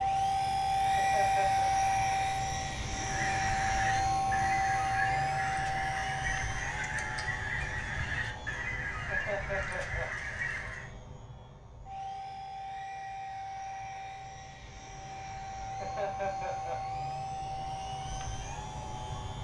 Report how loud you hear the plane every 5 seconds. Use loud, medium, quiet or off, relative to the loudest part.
loud, medium, quiet, medium.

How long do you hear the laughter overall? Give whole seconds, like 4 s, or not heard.
3 s.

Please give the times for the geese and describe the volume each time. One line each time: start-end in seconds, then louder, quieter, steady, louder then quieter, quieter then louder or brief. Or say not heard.
3.0-10.9 steady.